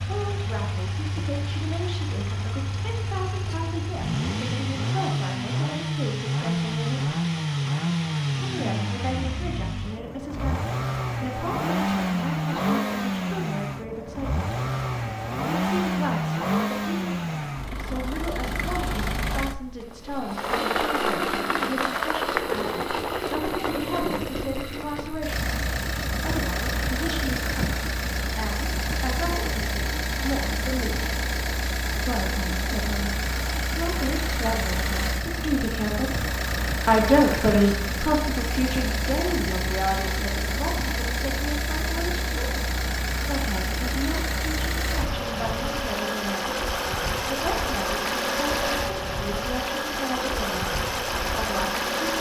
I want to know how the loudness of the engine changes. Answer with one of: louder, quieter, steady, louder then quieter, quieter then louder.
steady.